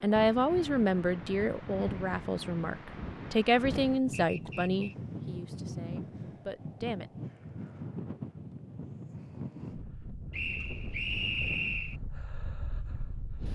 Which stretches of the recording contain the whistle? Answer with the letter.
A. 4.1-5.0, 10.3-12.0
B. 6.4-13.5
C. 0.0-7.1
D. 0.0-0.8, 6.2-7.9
A.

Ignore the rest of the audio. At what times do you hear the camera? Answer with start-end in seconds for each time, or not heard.
not heard.